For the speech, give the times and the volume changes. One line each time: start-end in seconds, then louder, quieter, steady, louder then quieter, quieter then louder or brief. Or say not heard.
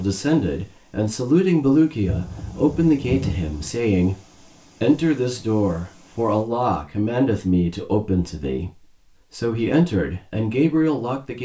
0.0-11.3 steady.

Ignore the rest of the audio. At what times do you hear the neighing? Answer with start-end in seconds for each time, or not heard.
not heard.